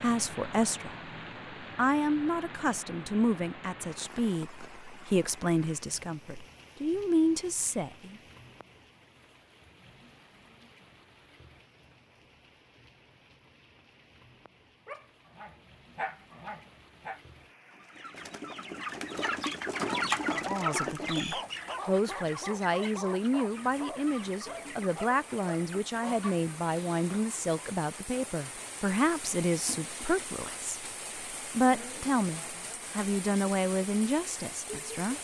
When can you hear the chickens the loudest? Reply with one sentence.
The volume of the chickens peaks at 20 seconds.